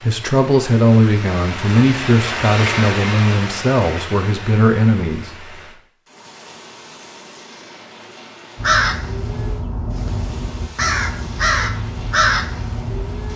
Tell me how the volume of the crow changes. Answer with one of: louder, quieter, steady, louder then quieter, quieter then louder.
louder.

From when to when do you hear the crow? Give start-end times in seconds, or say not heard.
8.6-13.3.